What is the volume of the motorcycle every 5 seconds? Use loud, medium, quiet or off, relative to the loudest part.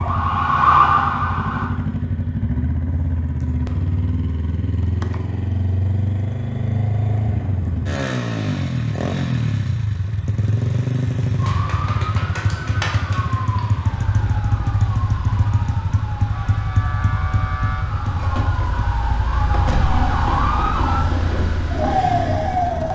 loud, loud, loud, loud, medium.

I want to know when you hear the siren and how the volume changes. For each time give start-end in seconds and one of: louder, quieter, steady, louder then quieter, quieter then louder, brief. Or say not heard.
0.0-1.8 brief
11.3-22.9 quieter then louder.